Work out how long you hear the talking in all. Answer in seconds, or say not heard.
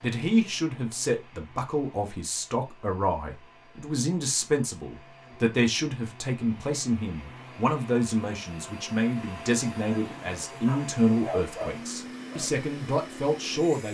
14 s.